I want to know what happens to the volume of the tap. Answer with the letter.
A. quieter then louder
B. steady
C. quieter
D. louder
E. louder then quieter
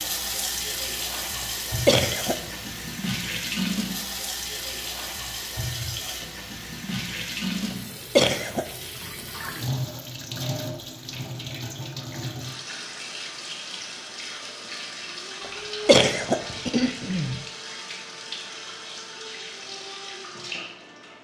C.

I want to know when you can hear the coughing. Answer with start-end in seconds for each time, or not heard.
1.9-2.4, 8.2-8.7, 15.8-17.4.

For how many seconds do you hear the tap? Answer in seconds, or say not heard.
21 s.